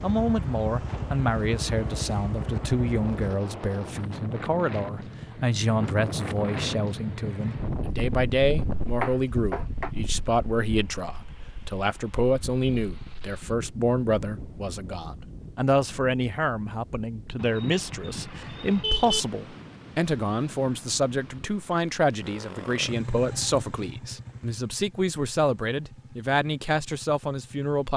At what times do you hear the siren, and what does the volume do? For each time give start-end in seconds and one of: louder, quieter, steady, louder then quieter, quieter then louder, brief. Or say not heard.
not heard.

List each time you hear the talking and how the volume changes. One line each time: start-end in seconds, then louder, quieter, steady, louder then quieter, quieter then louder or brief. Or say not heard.
0.0-27.9 steady.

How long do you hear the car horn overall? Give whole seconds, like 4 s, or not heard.
3 s.